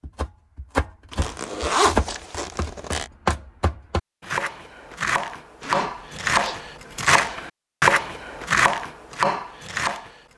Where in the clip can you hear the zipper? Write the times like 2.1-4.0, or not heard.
1.1-3.0, 5.6-7.3.